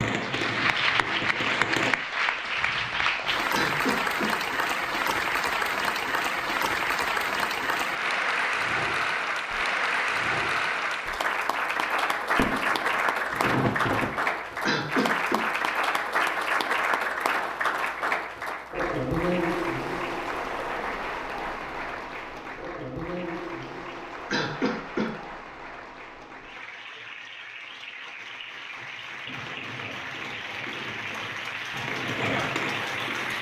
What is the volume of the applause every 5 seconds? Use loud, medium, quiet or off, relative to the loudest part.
loud, loud, loud, loud, medium, quiet, medium.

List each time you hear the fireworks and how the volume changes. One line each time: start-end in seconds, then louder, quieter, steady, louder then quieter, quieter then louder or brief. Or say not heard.
0.0-1.9 brief
12.3-14.1 brief
29.2-33.3 louder.